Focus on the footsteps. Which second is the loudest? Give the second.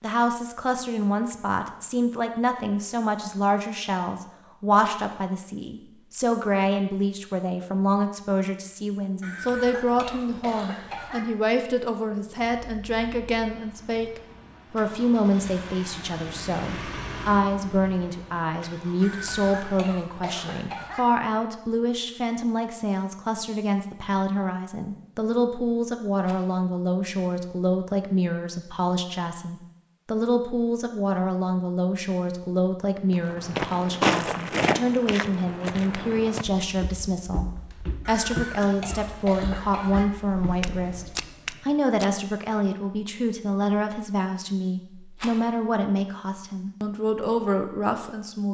34 s.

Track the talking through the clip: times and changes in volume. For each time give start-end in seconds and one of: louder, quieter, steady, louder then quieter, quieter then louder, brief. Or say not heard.
0.0-48.4 steady.